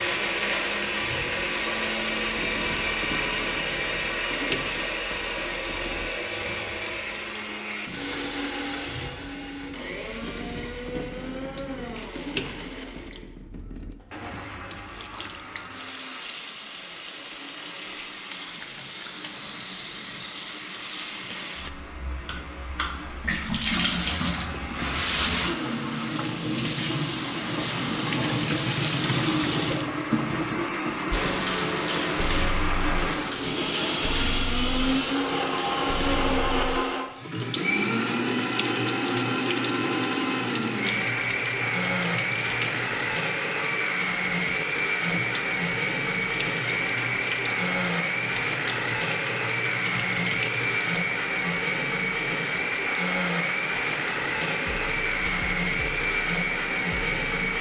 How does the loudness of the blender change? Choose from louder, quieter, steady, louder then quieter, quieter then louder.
quieter then louder.